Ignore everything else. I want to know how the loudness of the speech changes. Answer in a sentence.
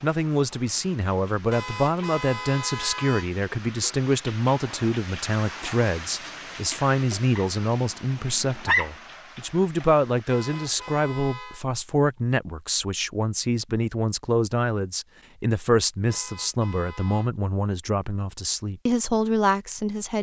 The loudness of the speech stays about the same.